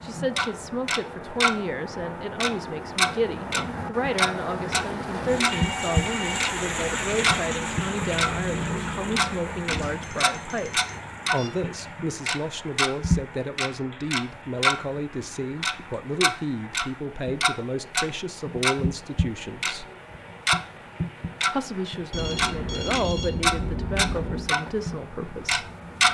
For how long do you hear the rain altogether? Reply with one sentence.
The rain can be heard for 26 seconds in total.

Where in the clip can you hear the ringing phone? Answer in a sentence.
The ringing phone can be heard from 5.4 to 6.5 s, from 9.7 to 11.5 s and from 22.1 to 24.4 s.